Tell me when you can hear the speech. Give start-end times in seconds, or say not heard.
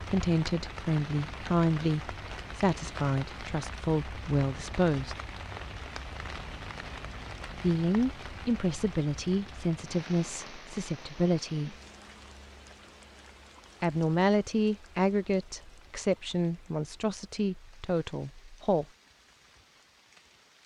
0.0-5.2, 7.5-11.8, 13.8-18.9.